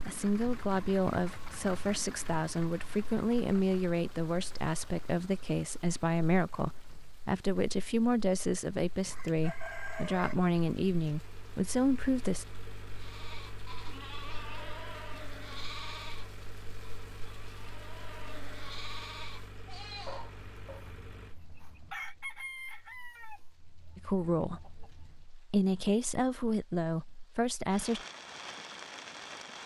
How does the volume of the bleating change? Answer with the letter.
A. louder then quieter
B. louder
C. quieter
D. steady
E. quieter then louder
D.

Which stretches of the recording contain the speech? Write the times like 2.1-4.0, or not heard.
0.1-12.4, 23.9-28.1.